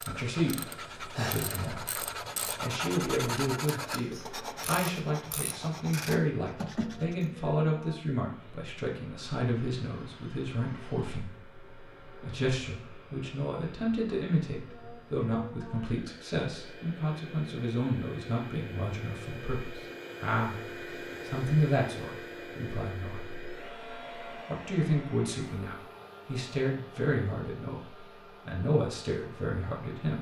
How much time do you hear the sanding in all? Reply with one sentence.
The sanding can be heard for 7 seconds in total.